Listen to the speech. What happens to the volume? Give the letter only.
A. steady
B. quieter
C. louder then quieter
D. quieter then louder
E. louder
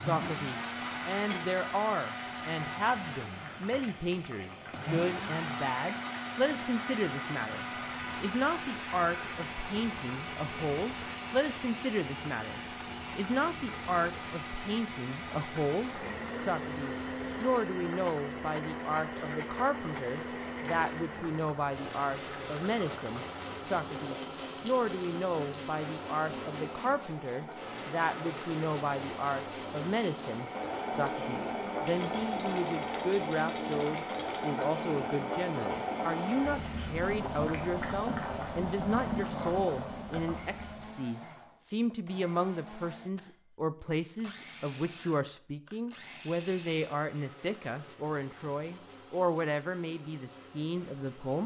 A.